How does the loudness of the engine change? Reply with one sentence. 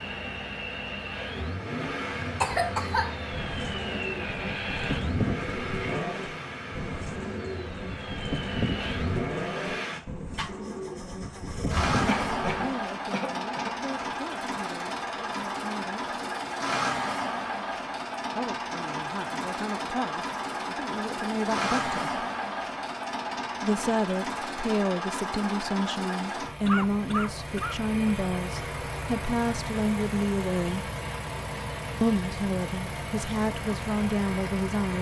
The volume of the engine stays about the same.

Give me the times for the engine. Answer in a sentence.
You can hear the engine from 0.0 to 34.9 s.